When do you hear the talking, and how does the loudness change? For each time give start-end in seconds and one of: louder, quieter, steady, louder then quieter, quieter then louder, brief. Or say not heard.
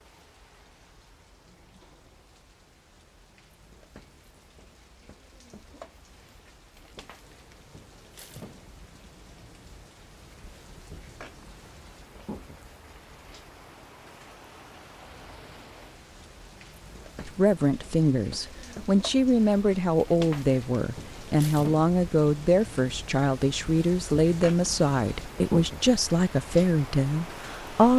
17.2-27.9 steady.